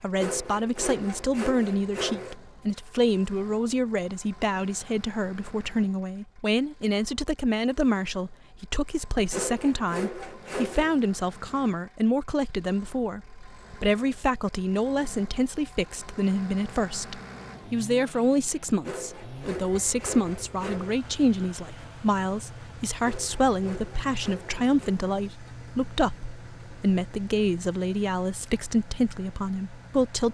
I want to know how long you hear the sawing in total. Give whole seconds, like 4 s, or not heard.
8 s.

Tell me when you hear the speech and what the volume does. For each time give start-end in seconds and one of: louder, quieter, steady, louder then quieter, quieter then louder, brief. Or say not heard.
0.0-30.2 steady.